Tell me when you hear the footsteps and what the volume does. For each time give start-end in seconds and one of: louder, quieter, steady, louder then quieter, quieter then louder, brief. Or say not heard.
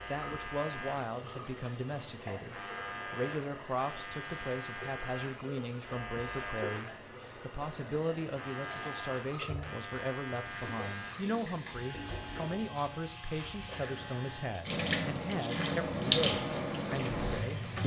not heard.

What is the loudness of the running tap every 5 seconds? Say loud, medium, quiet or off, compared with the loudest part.
quiet, quiet, medium, loud.